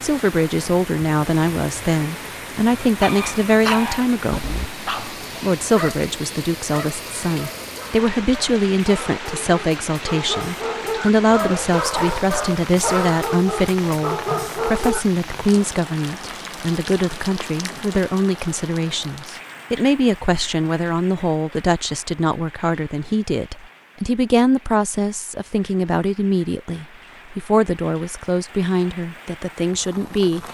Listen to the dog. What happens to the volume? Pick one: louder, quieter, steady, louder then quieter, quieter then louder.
quieter then louder.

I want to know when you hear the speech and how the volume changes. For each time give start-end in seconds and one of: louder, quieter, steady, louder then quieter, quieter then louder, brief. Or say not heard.
0.0-4.6 steady
5.4-30.4 steady.